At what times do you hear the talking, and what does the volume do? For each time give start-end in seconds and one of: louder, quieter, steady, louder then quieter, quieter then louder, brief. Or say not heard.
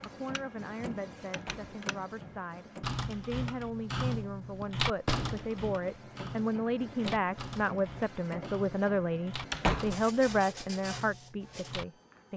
0.1-12.3 louder.